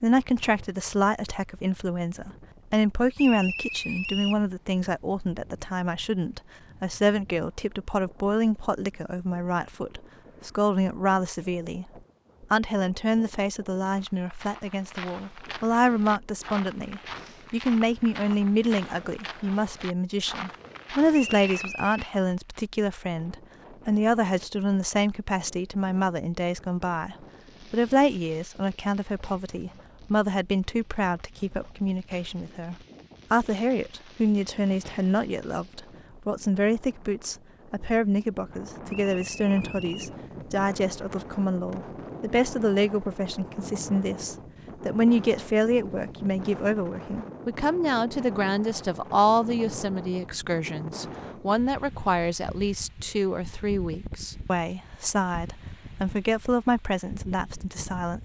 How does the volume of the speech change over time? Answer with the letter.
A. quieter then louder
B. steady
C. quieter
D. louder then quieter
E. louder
B.